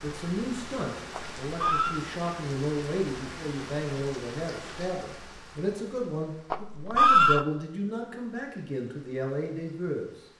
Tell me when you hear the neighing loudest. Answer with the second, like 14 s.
7 s.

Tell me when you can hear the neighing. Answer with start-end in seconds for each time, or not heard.
1.1-2.0, 6.5-7.5.